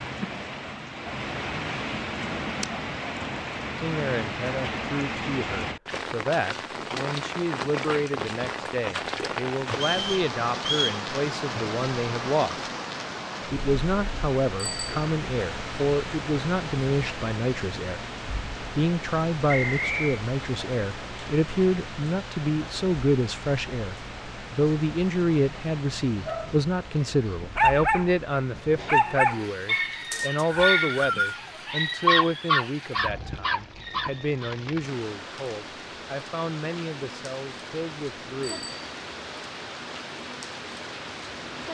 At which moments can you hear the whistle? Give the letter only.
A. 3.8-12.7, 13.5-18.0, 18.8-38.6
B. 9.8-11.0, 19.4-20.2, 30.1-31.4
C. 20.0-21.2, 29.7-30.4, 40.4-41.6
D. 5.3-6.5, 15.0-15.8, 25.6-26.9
B.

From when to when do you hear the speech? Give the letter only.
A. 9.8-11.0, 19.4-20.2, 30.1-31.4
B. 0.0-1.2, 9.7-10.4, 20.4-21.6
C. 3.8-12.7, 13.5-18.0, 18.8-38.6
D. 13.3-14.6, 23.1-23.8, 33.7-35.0
C.